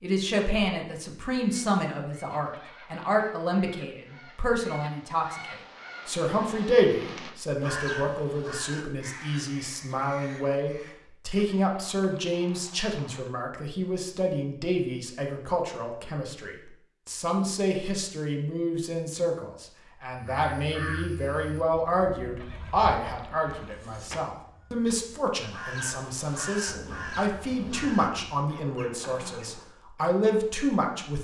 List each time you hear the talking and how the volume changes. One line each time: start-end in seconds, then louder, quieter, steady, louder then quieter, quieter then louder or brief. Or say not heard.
0.0-31.1 steady.